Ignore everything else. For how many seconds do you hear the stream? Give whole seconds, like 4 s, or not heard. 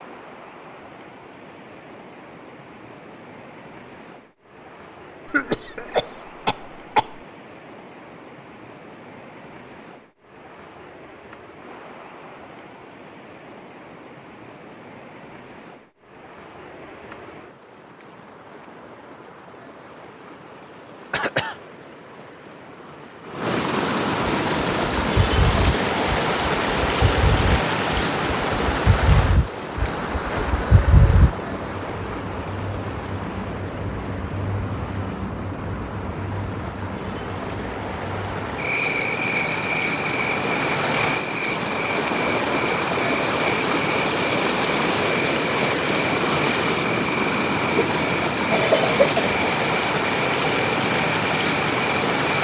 52 s.